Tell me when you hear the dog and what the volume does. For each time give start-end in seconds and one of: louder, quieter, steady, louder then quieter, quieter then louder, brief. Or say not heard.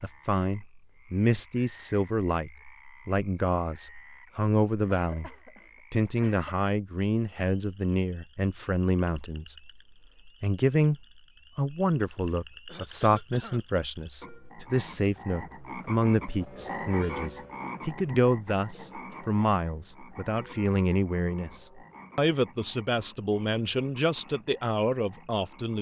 not heard.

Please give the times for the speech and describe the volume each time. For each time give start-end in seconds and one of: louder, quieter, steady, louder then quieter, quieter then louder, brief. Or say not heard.
0.0-25.7 steady.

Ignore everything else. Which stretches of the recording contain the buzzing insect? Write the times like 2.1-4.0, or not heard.
not heard.